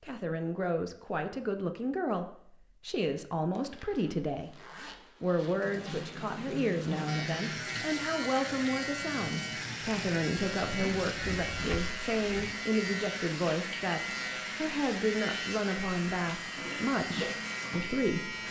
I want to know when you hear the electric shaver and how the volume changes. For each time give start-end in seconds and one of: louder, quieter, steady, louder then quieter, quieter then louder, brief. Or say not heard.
7.0-18.4 steady.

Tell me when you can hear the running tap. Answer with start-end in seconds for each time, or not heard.
5.5-18.4.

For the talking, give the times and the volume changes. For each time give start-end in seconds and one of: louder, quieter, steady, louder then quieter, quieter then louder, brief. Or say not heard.
0.0-4.5 steady
5.2-18.3 steady.